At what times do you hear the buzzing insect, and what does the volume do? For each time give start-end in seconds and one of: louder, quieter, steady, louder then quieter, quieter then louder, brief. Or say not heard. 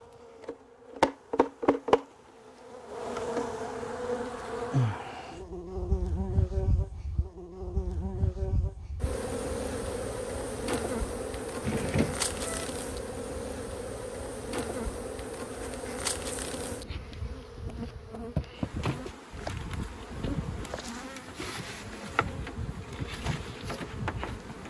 0.0-24.6 quieter.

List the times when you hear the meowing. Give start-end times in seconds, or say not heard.
11.6-12.7.